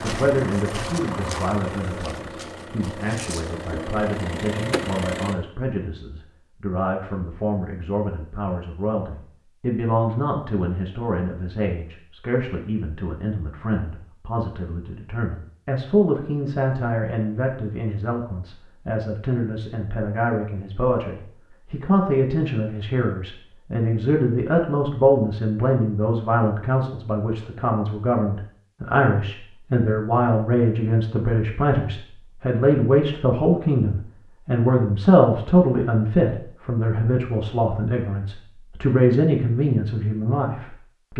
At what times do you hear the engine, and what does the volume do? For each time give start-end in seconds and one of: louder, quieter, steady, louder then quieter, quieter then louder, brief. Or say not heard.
0.0-5.3 quieter then louder.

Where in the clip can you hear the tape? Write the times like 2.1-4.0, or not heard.
not heard.